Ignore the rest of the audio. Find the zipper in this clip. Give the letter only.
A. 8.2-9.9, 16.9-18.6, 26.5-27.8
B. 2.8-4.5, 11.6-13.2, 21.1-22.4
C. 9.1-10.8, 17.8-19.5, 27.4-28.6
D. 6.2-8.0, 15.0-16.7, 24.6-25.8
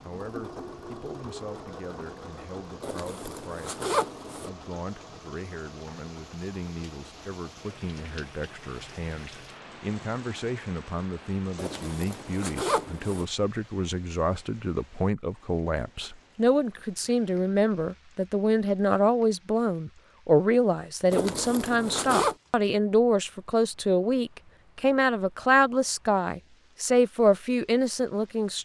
B.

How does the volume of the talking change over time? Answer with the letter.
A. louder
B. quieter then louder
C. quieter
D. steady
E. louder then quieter
A.